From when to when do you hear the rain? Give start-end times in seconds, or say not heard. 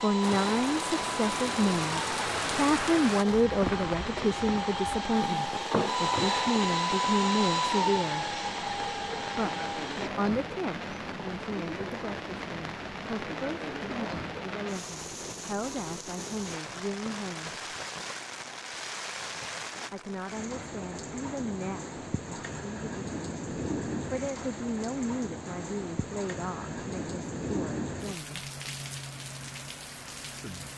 0.0-30.7.